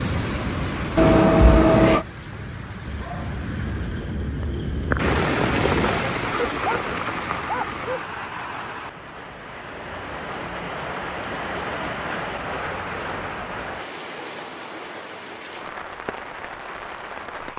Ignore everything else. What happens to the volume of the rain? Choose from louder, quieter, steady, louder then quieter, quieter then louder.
louder then quieter.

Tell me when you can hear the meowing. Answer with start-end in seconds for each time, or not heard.
0.9-2.0.